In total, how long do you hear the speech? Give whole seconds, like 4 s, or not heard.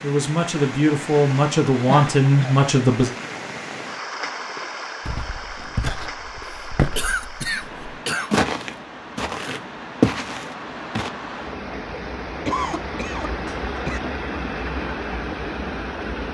3 s.